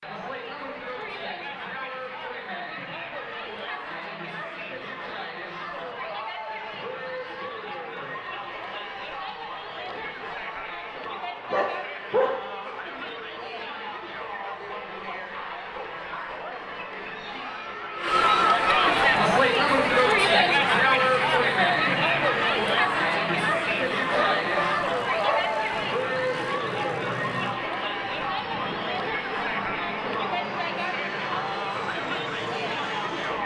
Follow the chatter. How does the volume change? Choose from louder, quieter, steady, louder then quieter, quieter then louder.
louder then quieter.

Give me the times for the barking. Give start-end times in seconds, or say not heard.
11.5-12.3, 24.1-25.6.